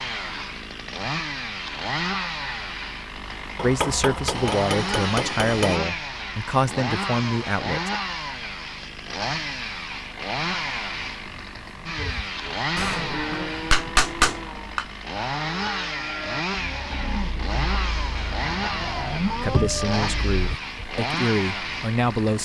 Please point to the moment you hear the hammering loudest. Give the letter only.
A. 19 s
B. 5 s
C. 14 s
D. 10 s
C.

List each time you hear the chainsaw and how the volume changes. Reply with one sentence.
You can hear the chainsaw from 0.0 to 22.4 s, at a steady volume.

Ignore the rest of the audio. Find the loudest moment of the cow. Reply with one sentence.
The volume of the cow peaks at 19 seconds.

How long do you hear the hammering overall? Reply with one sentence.
You can hear the hammering for 4 seconds altogether.